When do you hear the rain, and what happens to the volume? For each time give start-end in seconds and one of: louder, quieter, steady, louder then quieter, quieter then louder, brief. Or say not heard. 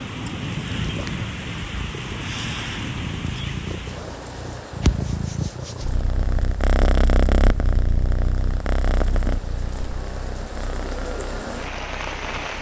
0.0-12.5 quieter then louder.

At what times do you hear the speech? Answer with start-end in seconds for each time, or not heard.
not heard.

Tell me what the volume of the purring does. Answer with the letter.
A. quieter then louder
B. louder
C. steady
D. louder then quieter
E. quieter
D.